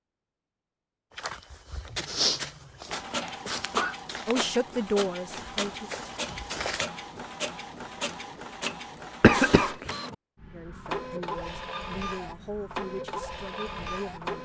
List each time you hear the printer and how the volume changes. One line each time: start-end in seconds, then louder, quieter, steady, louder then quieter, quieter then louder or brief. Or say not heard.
2.9-14.4 steady.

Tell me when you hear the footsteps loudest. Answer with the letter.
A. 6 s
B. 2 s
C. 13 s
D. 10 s
B.